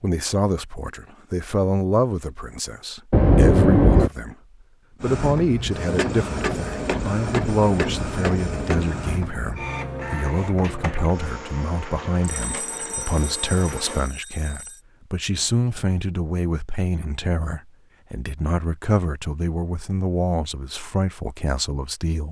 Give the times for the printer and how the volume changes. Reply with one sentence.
You can hear the printer from 5.0 to 14.1 s, getting quieter.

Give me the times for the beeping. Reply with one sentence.
You can hear the beeping from 3.1 to 4.1 s and from 12.2 to 14.8 s.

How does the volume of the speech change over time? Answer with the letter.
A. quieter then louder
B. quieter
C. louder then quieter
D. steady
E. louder
D.